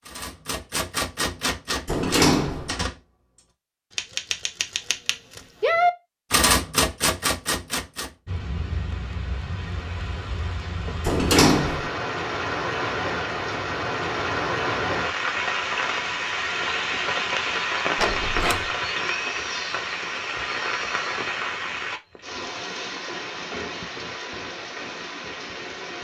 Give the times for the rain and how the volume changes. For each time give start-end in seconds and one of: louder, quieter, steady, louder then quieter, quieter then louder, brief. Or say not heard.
8.2-25.9 louder then quieter.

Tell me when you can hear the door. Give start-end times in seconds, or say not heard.
1.9-2.7, 11.1-11.9, 17.9-18.7.